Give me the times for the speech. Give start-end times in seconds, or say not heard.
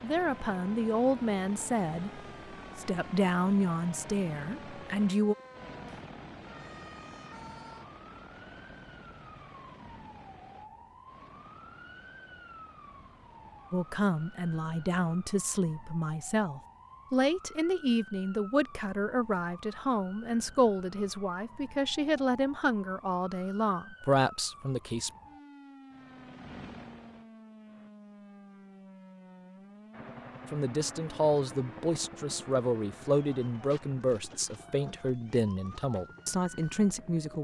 0.0-5.3, 13.7-25.1, 30.5-37.3.